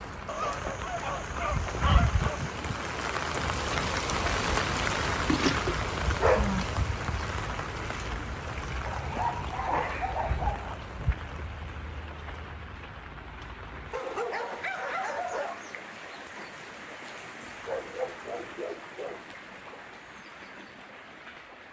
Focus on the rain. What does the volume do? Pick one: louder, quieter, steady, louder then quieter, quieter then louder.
quieter.